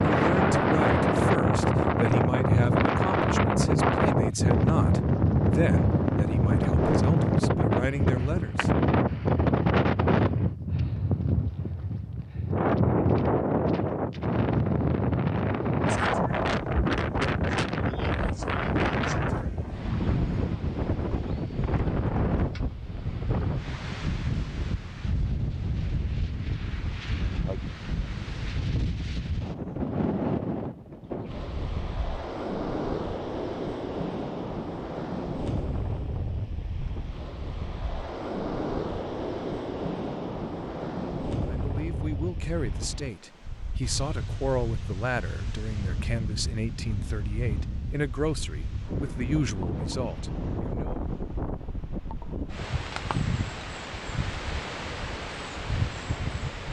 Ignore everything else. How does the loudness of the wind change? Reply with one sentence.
The loudness of the wind goes down.